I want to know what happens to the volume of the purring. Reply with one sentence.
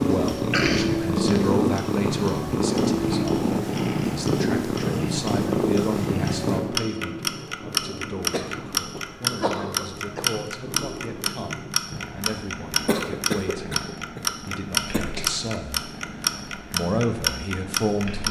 The volume of the purring goes down.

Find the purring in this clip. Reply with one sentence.
You can hear the purring from 0.0 to 18.2 s.